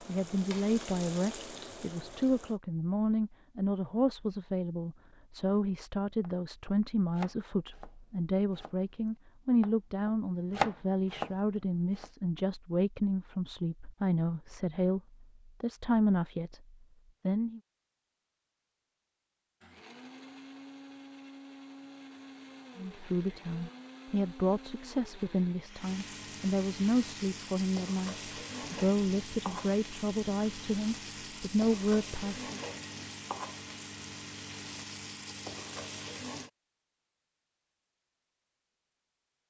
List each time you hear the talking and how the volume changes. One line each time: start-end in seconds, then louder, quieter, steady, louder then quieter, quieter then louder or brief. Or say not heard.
0.1-17.6 steady
22.8-32.5 steady.